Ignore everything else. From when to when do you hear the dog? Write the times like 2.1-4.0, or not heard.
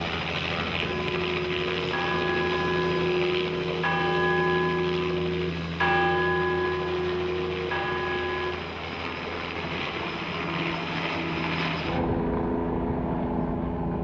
not heard.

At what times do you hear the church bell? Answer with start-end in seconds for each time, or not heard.
0.8-8.6.